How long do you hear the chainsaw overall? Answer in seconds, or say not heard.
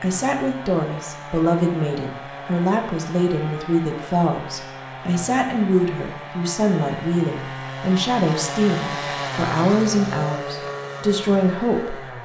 12 s.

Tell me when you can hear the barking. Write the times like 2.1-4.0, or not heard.
not heard.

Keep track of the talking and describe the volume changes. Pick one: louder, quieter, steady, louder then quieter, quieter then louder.
steady.